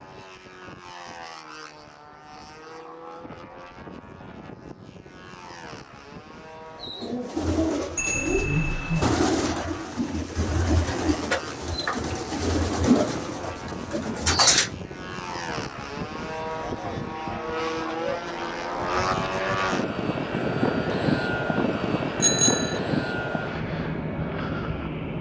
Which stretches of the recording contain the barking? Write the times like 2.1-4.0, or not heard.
not heard.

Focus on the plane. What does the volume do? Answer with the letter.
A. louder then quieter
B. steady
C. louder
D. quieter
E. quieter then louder
C.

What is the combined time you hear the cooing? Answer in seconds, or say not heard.
8 s.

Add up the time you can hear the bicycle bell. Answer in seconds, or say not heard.
2 s.